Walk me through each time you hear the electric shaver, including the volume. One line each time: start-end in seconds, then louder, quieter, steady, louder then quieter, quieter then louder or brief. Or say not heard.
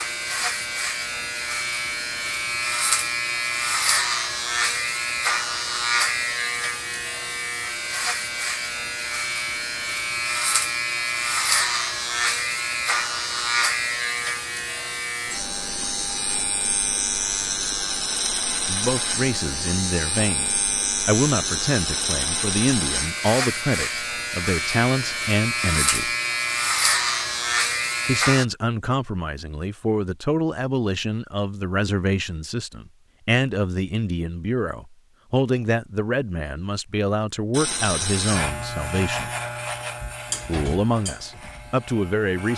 0.0-28.4 steady
37.5-42.5 quieter.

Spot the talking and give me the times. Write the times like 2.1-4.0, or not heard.
18.6-26.1, 28.1-39.3, 40.5-42.5.